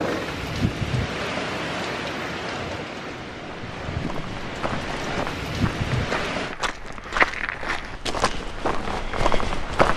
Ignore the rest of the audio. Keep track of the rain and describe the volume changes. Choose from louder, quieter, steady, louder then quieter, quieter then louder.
quieter then louder.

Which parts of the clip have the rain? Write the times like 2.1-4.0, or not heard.
0.0-6.5.